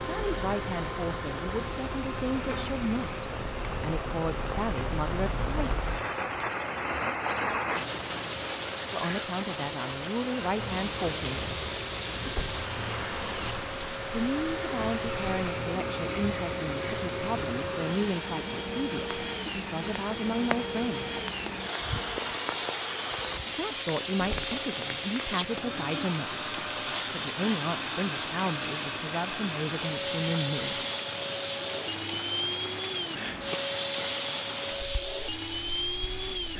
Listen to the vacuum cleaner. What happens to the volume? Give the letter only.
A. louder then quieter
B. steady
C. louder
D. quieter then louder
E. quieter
C.